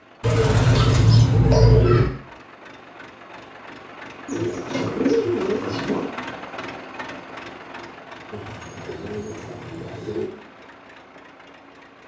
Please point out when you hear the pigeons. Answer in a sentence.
The pigeons can be heard from 0.2 to 2.1 s, from 4.2 to 6.1 s and from 8.3 to 10.2 s.